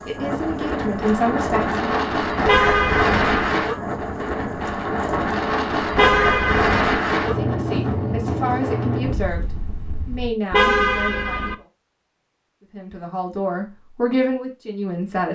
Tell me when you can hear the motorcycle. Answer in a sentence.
The motorcycle can't be heard in this clip.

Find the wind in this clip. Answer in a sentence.
The wind can be heard from 0.0 to 10.3 s.